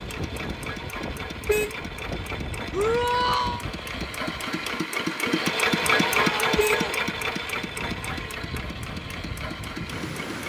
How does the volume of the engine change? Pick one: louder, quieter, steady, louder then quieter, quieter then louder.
louder then quieter.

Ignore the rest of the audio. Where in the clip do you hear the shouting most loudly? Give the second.
3 s.